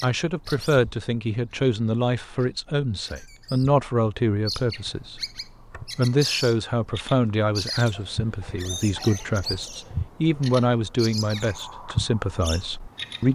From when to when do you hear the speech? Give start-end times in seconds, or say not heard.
0.0-13.3.